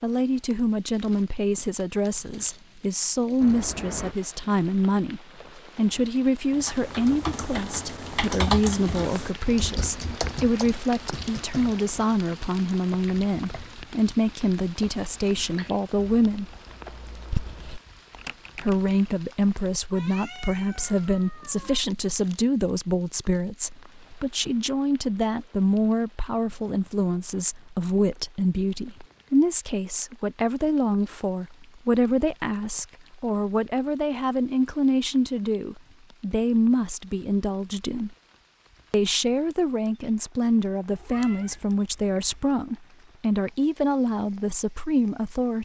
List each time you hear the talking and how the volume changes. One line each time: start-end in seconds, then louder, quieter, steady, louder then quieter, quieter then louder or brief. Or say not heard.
0.0-16.5 steady
18.6-38.1 steady
38.9-45.5 steady.